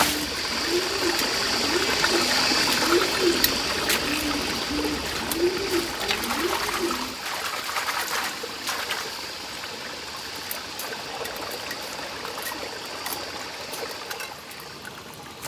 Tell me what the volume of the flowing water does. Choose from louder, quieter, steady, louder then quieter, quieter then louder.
quieter.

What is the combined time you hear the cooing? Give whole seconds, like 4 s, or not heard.
7 s.